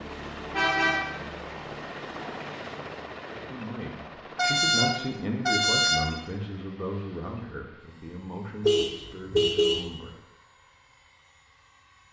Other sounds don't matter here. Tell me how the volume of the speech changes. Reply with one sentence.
The loudness of the speech goes down.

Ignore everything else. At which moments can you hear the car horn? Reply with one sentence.
You can hear the car horn from 0.5 to 1.1 s, from 4.3 to 6.2 s and from 8.6 to 9.9 s.